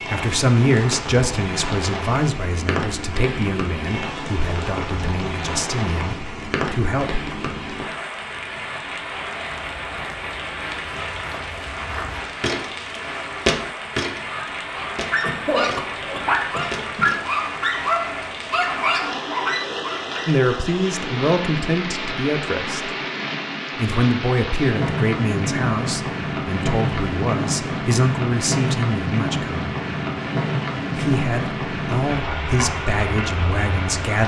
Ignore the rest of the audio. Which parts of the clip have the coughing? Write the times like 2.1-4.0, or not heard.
15.2-17.1.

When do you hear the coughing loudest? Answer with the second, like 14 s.
16 s.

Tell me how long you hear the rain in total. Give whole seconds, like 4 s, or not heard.
34 s.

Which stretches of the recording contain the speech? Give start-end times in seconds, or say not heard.
0.1-7.2, 20.2-22.9, 23.8-29.6, 30.9-34.2.